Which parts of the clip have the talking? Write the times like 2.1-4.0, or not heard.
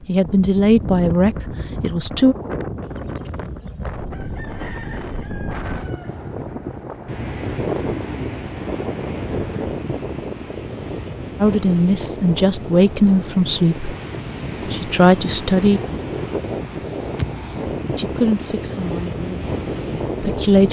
0.1-2.4, 11.4-13.9, 14.7-15.8, 17.9-19.4, 20.2-20.6.